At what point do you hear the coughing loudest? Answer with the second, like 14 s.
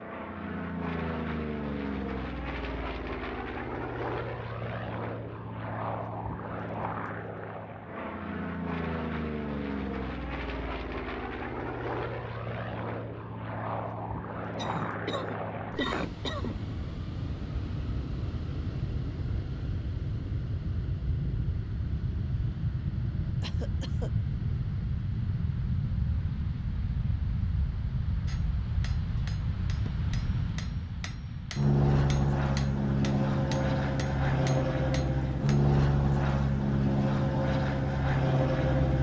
16 s.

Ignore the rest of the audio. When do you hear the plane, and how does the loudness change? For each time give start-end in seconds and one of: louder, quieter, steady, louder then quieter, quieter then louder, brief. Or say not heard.
0.0-38.9 louder.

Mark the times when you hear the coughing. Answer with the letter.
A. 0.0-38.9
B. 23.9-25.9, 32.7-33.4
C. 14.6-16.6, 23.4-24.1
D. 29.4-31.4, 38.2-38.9
C.